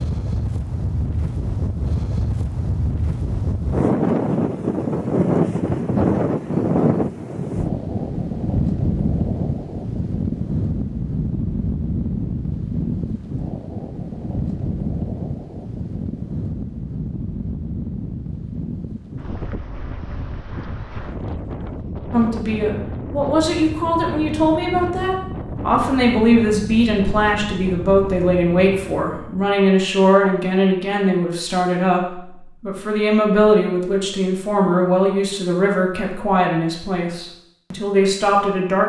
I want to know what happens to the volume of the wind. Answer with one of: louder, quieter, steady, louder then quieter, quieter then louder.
quieter.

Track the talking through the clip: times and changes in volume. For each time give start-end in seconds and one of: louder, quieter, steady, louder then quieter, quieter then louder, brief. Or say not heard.
22.1-38.8 steady.